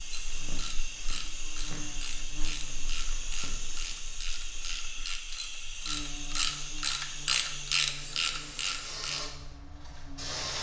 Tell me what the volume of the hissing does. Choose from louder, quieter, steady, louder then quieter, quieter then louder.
steady.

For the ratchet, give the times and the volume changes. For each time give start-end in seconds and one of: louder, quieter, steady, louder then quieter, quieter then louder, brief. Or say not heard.
0.1-9.3 louder.